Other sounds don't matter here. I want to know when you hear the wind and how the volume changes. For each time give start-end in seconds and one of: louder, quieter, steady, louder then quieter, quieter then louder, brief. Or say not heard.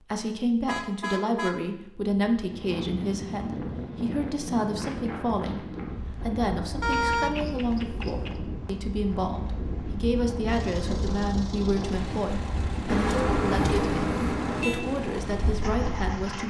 2.5-16.4 steady.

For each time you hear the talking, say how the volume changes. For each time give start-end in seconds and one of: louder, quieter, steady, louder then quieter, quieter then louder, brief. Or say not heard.
0.1-16.4 steady.